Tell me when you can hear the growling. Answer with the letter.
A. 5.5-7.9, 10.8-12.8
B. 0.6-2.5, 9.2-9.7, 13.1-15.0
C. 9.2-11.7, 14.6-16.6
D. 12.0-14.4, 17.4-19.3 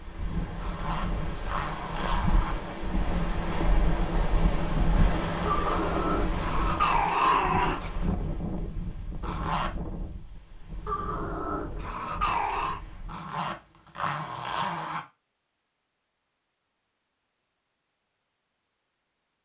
A.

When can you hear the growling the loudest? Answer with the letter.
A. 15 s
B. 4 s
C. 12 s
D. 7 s
D.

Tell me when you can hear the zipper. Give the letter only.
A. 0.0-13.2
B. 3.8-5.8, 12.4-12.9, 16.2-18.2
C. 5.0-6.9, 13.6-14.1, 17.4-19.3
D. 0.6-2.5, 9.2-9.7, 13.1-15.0
D.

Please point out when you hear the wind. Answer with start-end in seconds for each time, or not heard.
0.0-13.2.